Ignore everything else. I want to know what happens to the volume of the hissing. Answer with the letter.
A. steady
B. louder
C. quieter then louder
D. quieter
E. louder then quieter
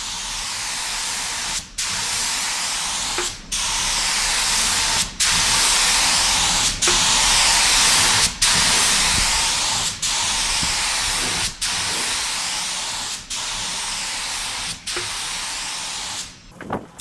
E.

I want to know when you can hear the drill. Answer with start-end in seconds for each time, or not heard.
not heard.